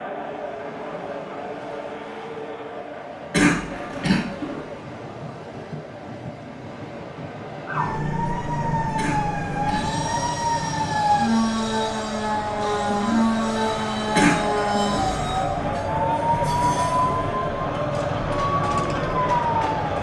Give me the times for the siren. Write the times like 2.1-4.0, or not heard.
7.7-19.9.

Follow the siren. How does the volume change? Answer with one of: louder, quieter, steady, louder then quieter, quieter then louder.
steady.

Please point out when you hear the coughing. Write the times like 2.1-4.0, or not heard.
3.3-4.7, 8.9-10.0, 14.2-14.7.